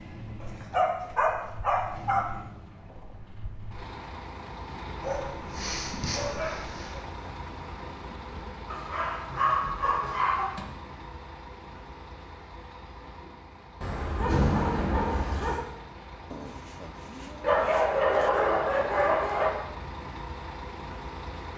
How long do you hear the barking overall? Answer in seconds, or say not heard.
10 s.